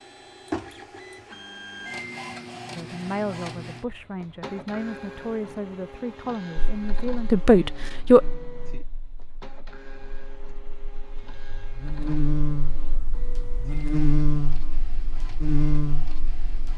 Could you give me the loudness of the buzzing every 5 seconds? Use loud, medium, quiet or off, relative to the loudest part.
off, quiet, loud, loud.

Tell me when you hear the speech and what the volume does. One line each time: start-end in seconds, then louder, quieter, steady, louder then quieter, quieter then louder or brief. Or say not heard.
2.8-8.2 louder.